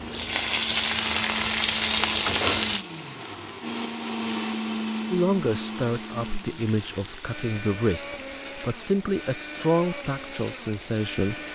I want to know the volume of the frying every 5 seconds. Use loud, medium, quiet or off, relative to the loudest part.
loud, quiet, quiet.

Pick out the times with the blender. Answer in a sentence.
You can hear the blender from 0.0 to 11.5 s.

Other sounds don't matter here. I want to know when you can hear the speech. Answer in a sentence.
You can hear the speech from 5.1 to 11.4 s.